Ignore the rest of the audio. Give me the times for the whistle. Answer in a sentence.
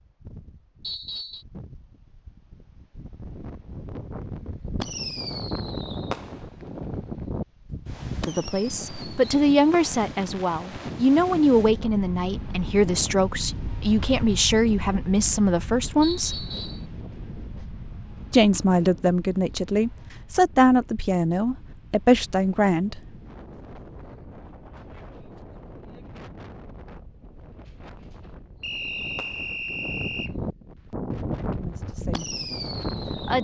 You can hear the whistle from 0.8 to 1.4 s, from 16.0 to 16.9 s and from 28.6 to 30.3 s.